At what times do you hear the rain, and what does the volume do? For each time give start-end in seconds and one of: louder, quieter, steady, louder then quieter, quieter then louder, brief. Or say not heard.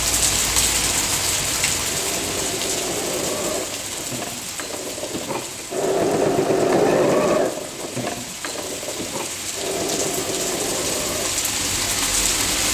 0.0-12.6 quieter then louder.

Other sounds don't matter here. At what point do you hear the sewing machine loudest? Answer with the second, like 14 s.
7 s.